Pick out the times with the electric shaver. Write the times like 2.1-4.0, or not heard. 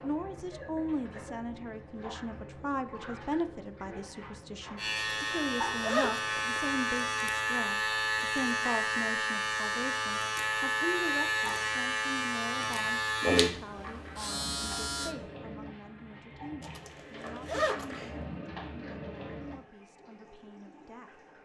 4.8-15.2.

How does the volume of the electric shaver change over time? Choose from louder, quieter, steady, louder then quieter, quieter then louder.
steady.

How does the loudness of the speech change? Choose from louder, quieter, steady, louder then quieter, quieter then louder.
quieter.